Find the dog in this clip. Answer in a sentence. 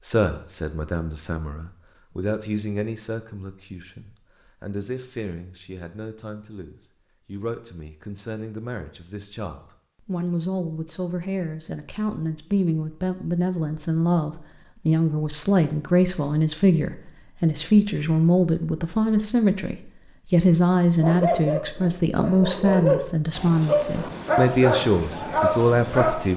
You can hear the dog from 21.0 to 26.3 s.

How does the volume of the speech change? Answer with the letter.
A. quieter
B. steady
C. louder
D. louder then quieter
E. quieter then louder
C.